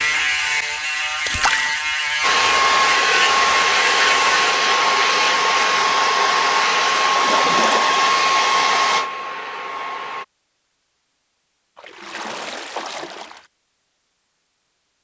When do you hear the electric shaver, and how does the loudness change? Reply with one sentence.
The electric shaver can be heard from 0.0 to 4.5 s, at a steady volume.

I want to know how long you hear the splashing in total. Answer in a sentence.
You can hear the splashing for 3 seconds altogether.